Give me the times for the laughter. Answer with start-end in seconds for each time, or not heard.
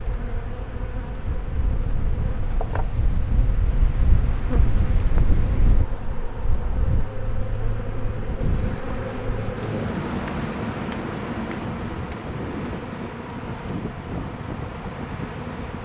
not heard.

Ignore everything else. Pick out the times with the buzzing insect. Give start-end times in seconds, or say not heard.
0.0-15.8.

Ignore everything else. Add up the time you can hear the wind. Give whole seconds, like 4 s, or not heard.
16 s.